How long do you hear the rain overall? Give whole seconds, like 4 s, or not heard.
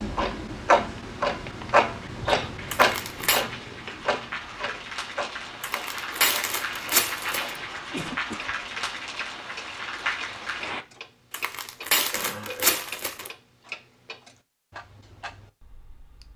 11 s.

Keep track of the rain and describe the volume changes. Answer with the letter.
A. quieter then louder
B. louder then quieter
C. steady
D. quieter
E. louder
E.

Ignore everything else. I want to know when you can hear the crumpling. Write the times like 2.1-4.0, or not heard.
2.7-3.5, 5.6-7.5, 11.3-13.3.